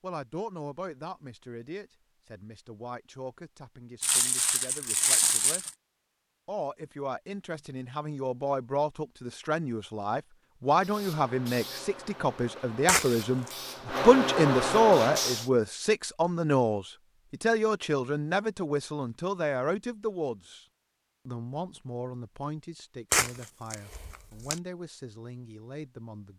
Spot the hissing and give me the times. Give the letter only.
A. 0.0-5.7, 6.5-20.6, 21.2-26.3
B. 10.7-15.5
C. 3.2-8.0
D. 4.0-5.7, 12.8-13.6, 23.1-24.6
B.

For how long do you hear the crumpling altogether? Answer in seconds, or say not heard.
4 s.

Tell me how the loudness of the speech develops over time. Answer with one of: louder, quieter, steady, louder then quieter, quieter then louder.
louder then quieter.